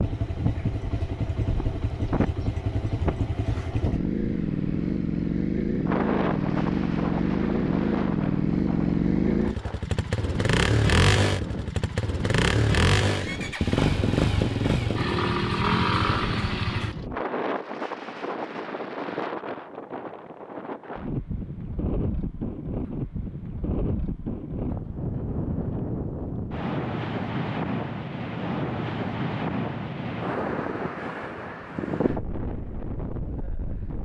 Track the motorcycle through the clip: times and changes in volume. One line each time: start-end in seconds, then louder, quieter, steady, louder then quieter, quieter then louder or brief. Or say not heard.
0.0-17.1 louder.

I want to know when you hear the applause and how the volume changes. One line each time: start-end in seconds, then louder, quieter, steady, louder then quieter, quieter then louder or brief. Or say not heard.
not heard.